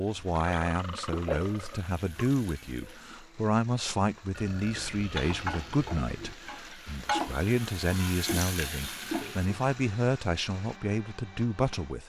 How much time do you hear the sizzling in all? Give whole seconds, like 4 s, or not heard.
8 s.